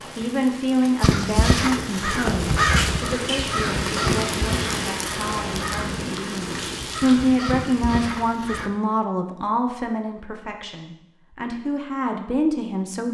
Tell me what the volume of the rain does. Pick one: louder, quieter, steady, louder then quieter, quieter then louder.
louder then quieter.